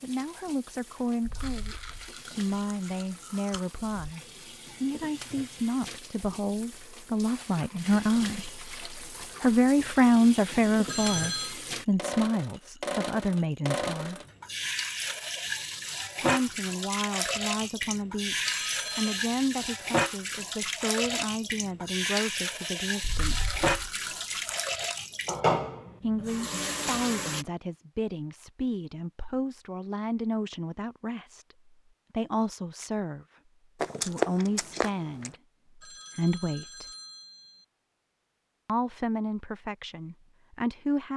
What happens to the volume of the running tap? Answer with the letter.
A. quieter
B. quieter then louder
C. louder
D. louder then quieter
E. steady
C.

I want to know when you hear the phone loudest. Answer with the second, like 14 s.
11 s.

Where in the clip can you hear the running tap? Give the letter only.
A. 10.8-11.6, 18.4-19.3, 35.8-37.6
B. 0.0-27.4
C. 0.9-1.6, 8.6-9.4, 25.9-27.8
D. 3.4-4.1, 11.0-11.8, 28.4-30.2
B.